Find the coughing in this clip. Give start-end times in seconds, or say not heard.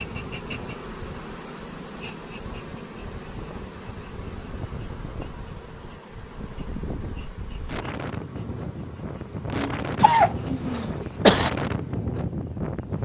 9.5-11.5.